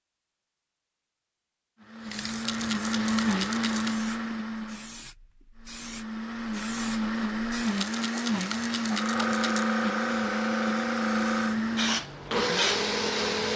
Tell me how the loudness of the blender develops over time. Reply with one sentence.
The volume of the blender goes down, then up.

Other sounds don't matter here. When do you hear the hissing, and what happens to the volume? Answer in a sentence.
You can hear the hissing from 2.0 to 13.5 s, getting louder.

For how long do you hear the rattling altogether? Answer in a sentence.
The rattling can be heard for 4 seconds in total.